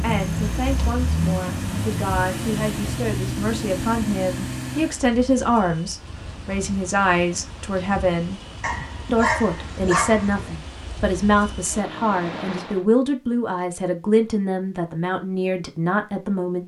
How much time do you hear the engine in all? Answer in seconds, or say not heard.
5 s.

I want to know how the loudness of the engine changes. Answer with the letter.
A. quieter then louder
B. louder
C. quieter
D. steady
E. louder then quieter
D.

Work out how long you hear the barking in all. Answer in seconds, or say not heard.
2 s.